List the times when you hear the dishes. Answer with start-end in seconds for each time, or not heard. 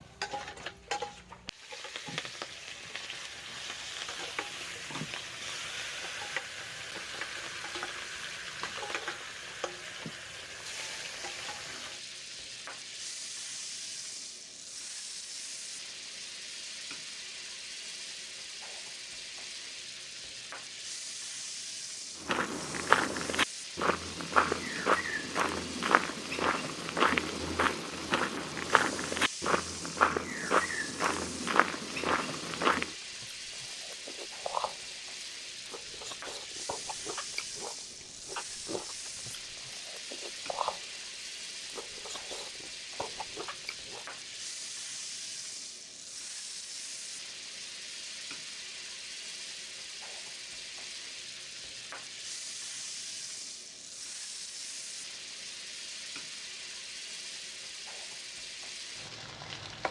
not heard.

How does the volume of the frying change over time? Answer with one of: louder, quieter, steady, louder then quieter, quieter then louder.
steady.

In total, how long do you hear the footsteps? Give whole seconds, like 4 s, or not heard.
11 s.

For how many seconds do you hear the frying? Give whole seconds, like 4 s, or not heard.
60 s.